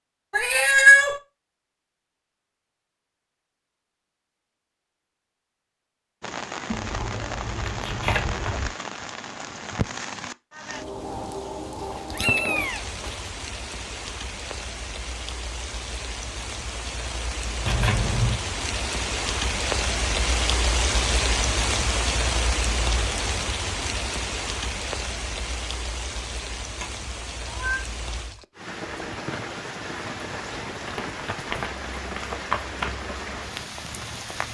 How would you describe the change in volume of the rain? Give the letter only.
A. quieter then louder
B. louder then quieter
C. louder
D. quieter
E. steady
B.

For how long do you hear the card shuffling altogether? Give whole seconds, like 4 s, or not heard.
5 s.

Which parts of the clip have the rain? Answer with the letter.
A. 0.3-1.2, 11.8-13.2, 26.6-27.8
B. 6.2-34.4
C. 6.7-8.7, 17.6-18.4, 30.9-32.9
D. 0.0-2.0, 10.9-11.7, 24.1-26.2
B.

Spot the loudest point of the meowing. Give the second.
1 s.